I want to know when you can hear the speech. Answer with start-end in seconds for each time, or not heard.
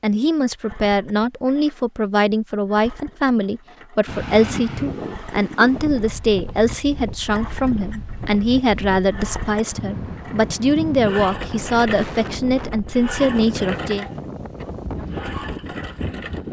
0.0-14.1.